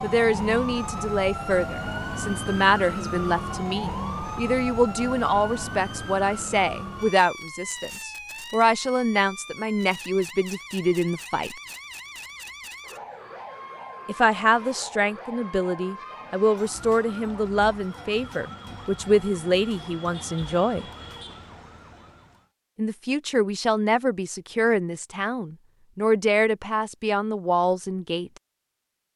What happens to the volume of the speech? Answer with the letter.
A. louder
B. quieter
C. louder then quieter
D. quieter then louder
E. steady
E.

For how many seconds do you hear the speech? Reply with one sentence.
The speech can be heard for 24 seconds in total.